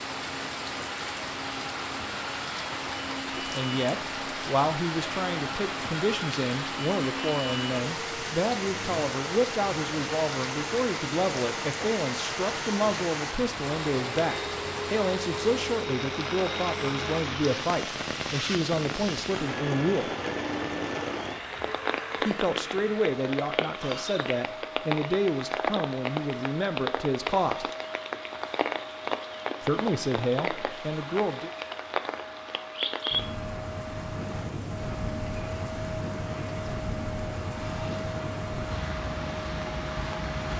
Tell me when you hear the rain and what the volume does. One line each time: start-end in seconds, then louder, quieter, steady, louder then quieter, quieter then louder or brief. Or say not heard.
0.0-40.5 steady.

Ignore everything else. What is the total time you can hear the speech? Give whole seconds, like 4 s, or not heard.
24 s.